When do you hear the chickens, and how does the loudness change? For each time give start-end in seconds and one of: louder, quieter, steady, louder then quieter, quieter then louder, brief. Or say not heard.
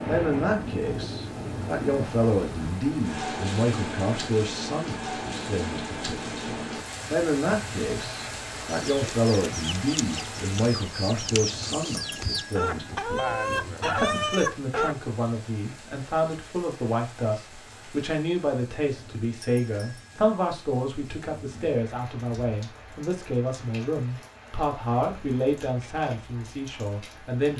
8.7-14.9 louder.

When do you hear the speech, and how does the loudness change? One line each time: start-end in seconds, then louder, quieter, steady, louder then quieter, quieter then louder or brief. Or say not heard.
0.0-27.5 steady.